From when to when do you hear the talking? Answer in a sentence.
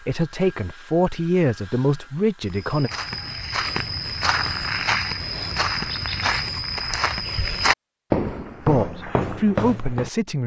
The talking can be heard from 0.0 to 2.9 s and from 8.6 to 10.4 s.